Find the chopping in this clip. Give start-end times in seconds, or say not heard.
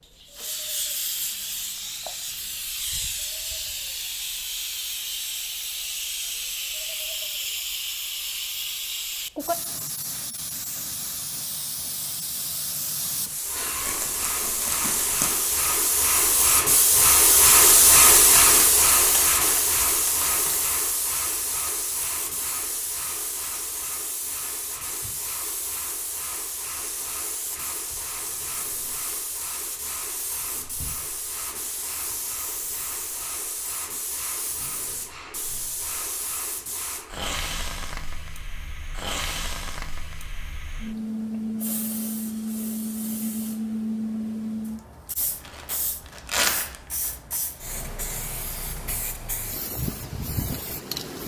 not heard.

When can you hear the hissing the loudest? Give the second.
18 s.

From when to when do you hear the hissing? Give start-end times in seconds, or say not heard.
0.0-51.2.